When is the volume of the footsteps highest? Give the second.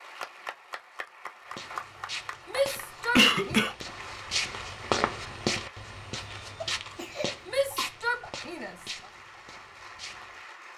5 s.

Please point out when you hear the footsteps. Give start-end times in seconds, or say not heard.
1.4-10.4.